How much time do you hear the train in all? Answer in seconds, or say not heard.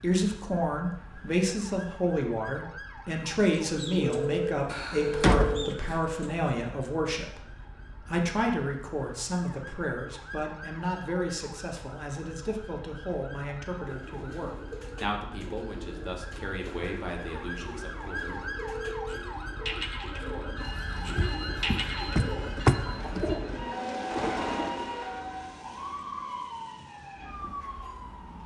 8 s.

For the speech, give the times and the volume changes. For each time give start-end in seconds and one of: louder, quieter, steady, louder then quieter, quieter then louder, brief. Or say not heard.
0.0-18.4 quieter.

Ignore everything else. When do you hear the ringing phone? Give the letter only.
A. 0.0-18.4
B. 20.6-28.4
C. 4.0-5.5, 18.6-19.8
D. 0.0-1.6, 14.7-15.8
C.